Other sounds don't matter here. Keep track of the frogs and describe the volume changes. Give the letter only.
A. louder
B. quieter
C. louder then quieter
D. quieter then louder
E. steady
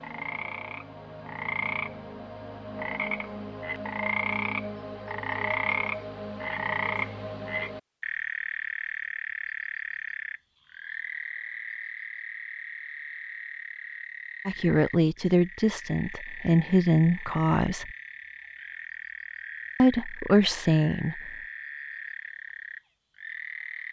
B.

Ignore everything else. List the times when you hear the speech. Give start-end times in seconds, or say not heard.
14.4-17.9, 19.8-21.2.